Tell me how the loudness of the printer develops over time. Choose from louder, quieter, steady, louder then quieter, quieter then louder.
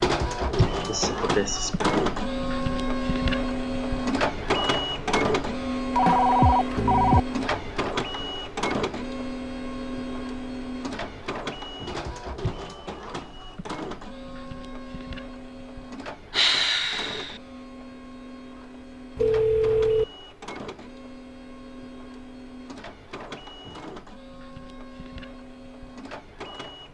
quieter.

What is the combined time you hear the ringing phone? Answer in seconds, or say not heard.
2 s.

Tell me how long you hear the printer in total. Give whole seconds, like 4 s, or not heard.
27 s.